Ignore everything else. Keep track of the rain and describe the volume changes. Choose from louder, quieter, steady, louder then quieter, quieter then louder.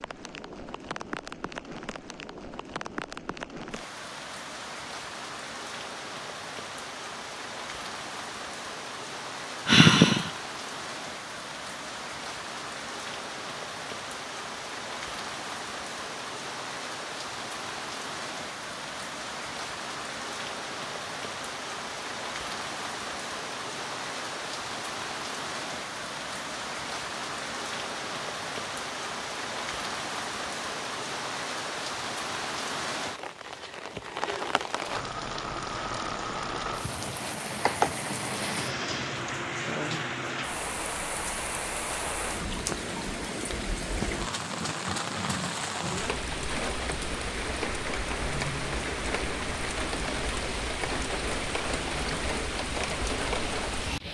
louder.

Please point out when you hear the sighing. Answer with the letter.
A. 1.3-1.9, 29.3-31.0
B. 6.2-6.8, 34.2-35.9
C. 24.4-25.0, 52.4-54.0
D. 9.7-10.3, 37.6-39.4
D.